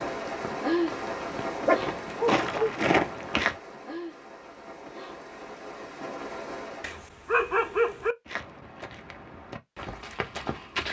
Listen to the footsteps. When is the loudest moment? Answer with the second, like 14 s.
3 s.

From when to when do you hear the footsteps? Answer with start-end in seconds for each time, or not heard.
0.0-3.5, 8.2-10.8.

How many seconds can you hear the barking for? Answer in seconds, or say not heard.
3 s.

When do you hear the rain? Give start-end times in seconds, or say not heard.
0.0-7.0.